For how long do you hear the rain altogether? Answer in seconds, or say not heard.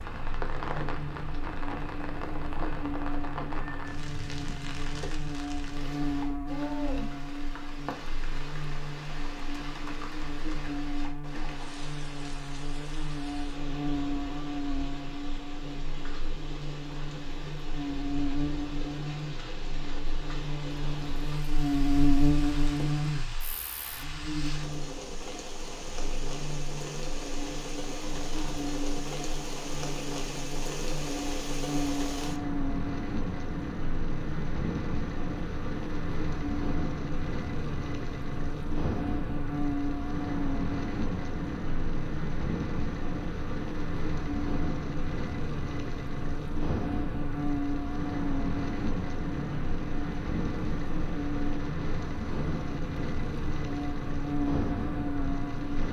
56 s.